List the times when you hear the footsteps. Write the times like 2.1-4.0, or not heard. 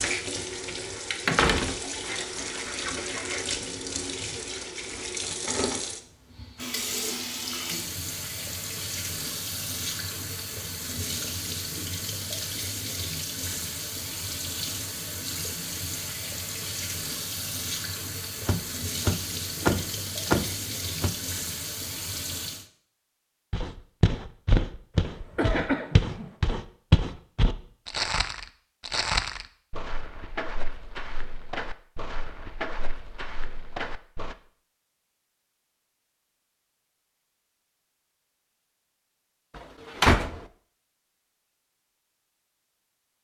23.5-34.4.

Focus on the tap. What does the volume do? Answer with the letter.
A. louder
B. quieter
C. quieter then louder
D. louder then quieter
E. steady
E.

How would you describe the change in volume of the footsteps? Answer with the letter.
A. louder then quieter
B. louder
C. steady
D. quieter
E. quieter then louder
D.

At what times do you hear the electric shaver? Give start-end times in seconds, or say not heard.
not heard.